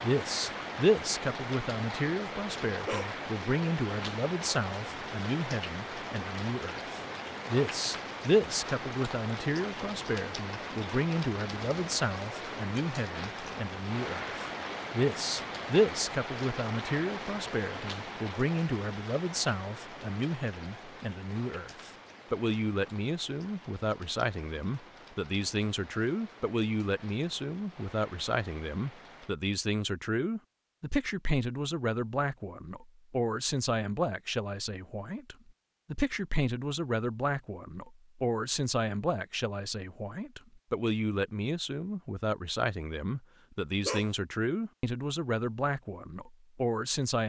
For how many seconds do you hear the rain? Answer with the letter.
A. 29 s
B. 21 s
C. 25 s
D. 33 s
A.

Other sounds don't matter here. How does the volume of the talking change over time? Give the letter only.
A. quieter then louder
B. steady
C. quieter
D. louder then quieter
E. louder
B.